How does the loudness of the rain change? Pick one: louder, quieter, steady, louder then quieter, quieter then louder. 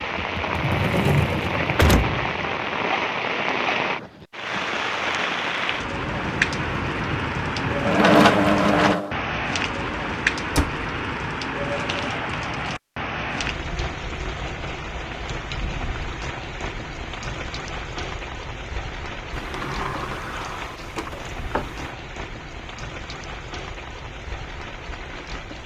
quieter.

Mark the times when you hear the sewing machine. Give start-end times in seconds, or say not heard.
0.0-2.6, 5.9-9.2.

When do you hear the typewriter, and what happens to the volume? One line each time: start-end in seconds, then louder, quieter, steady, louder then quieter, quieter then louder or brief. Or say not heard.
not heard.